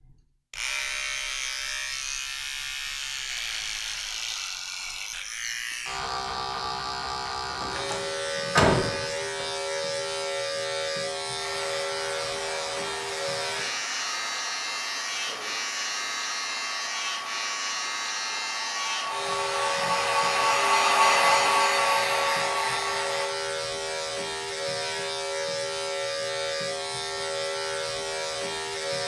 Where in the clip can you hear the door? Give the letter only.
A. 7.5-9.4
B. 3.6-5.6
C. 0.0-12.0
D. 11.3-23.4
A.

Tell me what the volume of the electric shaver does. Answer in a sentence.
The volume of the electric shaver stays about the same.